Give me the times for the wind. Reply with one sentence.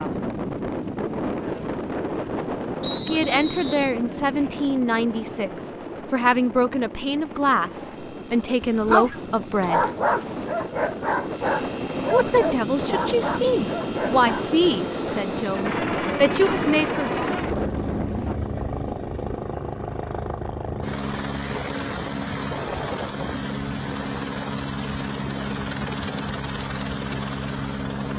The wind can be heard from 0.0 to 18.4 s.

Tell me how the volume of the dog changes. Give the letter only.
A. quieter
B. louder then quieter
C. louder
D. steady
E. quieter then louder
A.